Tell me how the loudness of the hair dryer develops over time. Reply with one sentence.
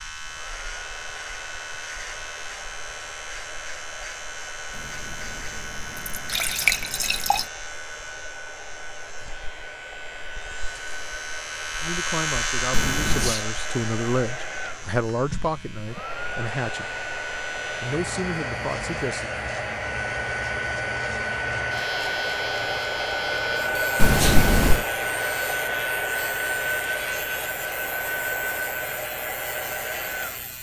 The loudness of the hair dryer goes up.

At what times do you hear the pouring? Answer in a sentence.
You can hear the pouring from 4.8 to 7.5 s, from 12.7 to 13.3 s and from 24.0 to 24.9 s.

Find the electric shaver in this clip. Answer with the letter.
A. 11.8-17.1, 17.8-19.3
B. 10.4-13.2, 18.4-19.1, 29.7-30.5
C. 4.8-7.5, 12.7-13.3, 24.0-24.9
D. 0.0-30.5
D.